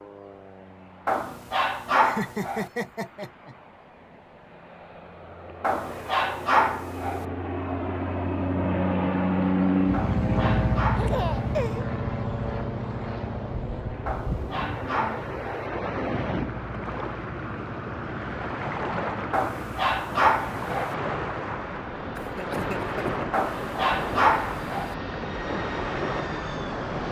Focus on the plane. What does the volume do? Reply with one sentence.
The volume of the plane goes up, then down.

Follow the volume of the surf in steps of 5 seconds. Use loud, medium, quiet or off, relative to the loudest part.
off, off, medium, loud, loud, loud.